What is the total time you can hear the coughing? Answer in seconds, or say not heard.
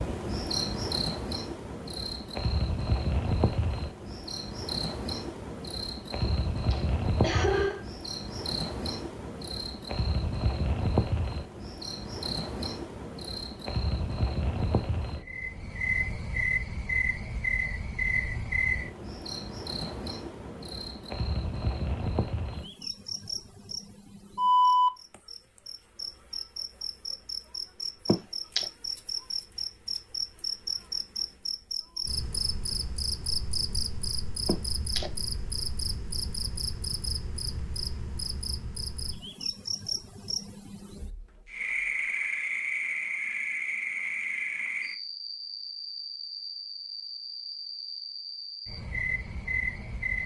3 s.